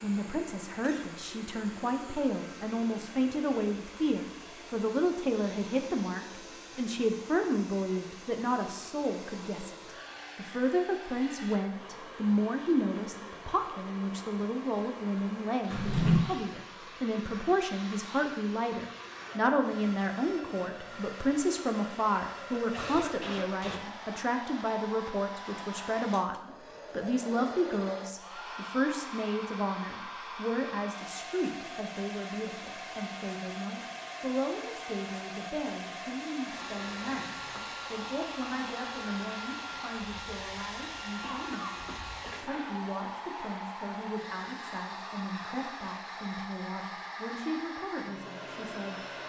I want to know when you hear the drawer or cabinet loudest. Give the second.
16 s.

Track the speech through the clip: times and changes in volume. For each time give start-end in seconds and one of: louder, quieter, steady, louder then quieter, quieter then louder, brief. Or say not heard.
0.0-49.0 quieter.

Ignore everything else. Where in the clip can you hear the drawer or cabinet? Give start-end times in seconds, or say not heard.
15.7-16.2, 36.5-37.6.